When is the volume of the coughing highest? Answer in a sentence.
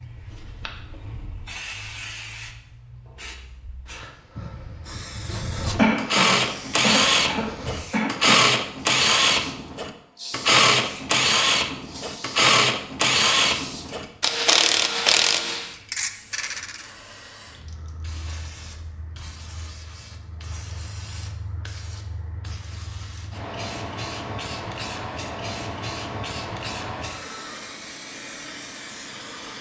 The volume of the coughing peaks at 6 seconds.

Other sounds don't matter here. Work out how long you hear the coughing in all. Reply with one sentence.
The coughing can be heard for 3 seconds in total.